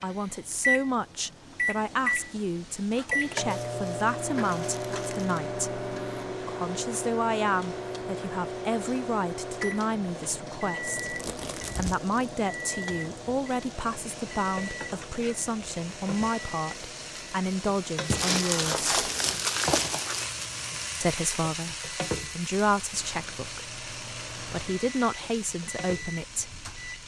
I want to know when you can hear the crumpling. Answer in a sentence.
You can hear the crumpling from 3.5 to 5.5 s, from 11.0 to 12.1 s and from 18.1 to 20.3 s.